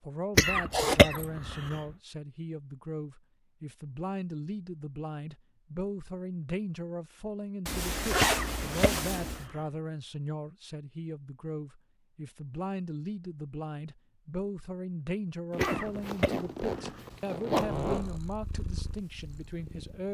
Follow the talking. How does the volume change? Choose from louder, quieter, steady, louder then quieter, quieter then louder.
steady.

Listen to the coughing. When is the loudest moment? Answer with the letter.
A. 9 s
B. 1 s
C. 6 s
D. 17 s
B.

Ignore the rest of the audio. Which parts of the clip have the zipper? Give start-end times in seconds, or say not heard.
0.7-1.2, 7.7-9.4, 15.5-18.1.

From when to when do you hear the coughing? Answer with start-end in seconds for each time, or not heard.
0.3-1.8, 8.2-9.6, 15.6-17.1.